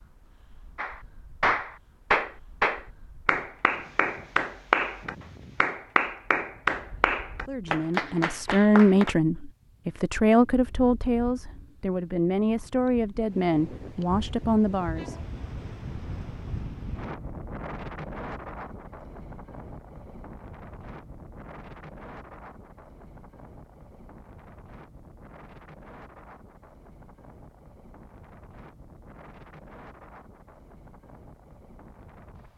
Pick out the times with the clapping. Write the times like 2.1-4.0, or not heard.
0.8-9.2.